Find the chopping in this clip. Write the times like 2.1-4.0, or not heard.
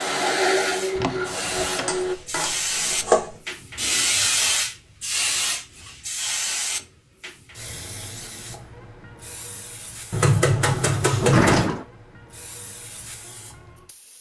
1.9-3.3, 10.1-11.7.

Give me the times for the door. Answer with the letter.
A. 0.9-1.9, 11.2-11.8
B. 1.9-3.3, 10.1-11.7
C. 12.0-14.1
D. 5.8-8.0
A.